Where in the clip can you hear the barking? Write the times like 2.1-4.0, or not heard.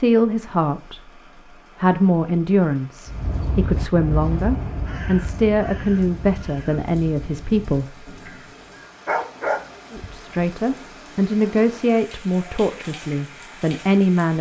9.1-10.2.